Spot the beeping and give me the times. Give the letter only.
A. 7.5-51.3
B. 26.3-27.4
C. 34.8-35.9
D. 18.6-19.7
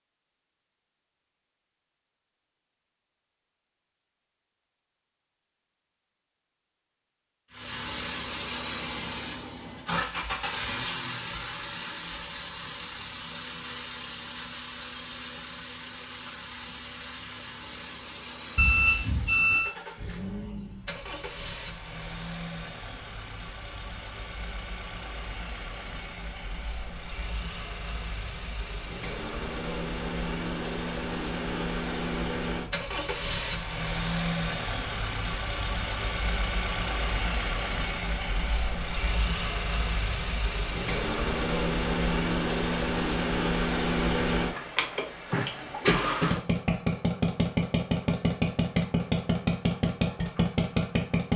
D.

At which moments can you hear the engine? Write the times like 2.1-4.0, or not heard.
7.5-51.3.